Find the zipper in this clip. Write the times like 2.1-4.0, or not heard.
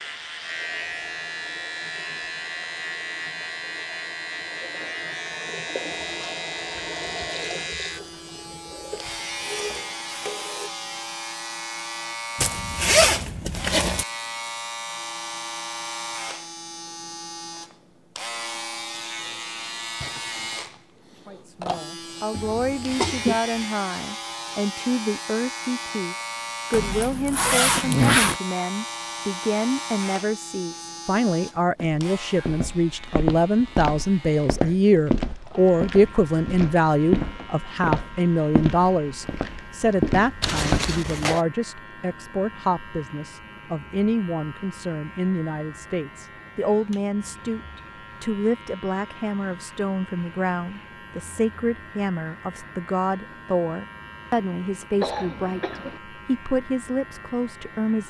12.3-14.1, 26.7-28.4, 40.4-41.4.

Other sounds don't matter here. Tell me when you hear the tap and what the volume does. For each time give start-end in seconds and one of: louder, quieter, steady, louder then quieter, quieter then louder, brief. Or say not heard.
0.0-10.7 louder.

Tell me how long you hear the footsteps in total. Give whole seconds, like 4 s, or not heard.
9 s.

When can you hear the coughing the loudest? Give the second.
23 s.